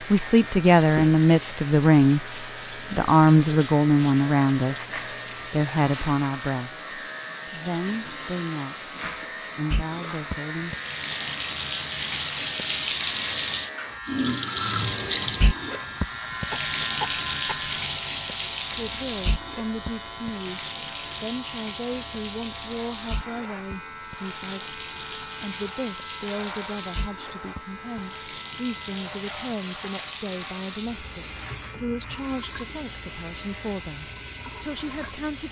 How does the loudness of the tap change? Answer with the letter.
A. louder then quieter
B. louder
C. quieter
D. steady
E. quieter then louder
A.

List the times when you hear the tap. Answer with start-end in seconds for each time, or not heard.
0.0-35.4.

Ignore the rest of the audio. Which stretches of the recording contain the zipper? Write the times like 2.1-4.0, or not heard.
not heard.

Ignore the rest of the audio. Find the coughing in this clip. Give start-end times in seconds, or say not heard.
16.5-17.7.